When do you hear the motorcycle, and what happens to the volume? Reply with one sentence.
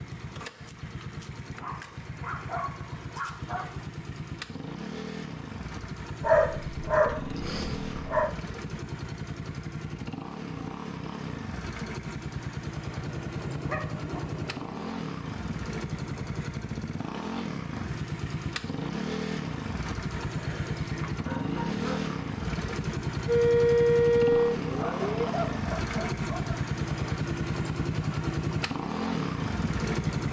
The motorcycle can be heard from 0.0 to 30.2 s, getting louder.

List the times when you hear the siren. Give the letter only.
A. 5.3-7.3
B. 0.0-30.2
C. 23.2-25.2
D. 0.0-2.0
C.